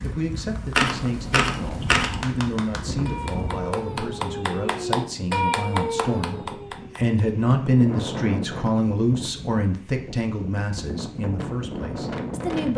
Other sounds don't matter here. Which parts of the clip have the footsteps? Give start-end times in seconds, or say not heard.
not heard.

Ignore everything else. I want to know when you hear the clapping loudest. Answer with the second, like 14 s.
5 s.